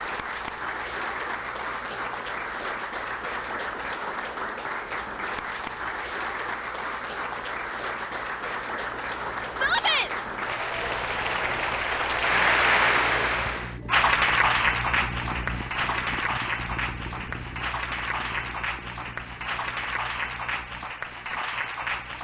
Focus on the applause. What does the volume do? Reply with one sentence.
The loudness of the applause goes up, then down.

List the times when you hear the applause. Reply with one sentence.
The applause can be heard from 0.0 to 22.1 s.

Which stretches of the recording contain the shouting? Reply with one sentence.
You can hear the shouting from 9.5 to 10.1 s.